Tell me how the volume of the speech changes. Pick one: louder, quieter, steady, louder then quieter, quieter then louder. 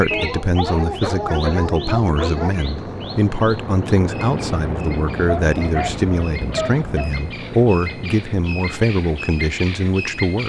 steady.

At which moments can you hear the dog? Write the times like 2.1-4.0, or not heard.
0.1-2.5, 5.2-7.1.